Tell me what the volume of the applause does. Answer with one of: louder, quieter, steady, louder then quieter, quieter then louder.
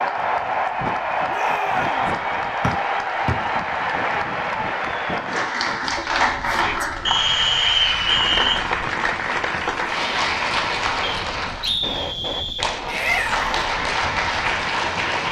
steady.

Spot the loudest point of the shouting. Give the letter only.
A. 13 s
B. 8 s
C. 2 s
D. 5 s
A.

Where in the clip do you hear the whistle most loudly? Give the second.
8 s.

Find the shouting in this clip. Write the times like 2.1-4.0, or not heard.
1.2-2.0, 6.5-6.9, 12.8-13.7.